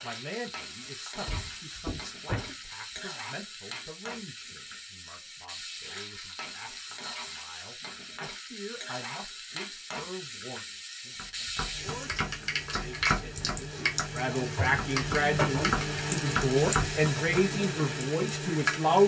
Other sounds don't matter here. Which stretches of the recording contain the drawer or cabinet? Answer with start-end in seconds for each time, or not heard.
1.2-3.0.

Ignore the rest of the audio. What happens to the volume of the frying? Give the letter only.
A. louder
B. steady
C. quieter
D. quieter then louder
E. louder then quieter
A.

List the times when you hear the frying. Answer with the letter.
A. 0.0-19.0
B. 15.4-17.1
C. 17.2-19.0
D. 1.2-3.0
A.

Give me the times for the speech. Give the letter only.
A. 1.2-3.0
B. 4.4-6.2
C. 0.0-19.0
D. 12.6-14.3
C.